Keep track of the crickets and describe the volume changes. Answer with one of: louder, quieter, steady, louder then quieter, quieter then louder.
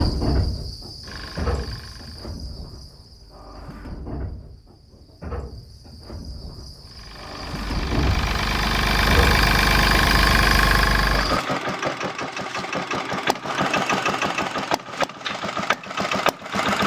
quieter then louder.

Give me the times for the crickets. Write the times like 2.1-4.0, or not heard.
0.0-11.4.